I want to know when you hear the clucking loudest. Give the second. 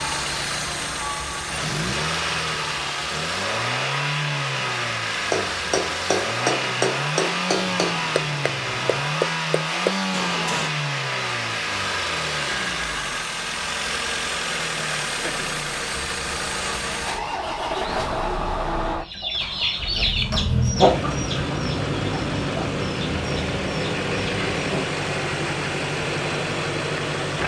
21 s.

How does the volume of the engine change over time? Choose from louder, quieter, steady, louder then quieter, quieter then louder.
steady.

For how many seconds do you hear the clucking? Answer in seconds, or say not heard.
6 s.